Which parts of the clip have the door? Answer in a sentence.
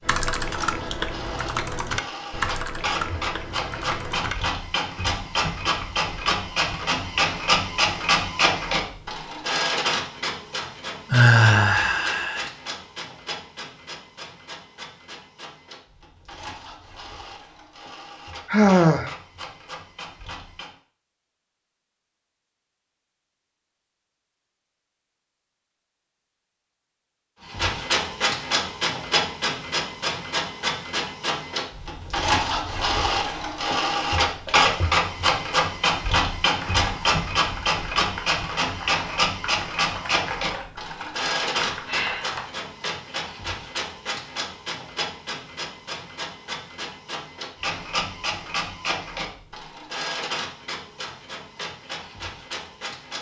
You can't hear the door here.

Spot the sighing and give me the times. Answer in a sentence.
You can hear the sighing from 11.1 to 12.5 s, from 18.4 to 19.1 s and from 41.9 to 42.4 s.